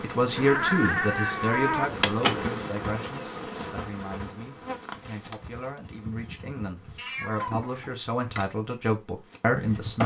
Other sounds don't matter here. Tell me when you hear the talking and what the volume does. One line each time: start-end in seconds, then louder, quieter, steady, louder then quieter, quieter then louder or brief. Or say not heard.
0.0-10.0 quieter then louder.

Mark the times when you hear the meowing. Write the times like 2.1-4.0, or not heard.
0.3-1.9, 7.0-8.0.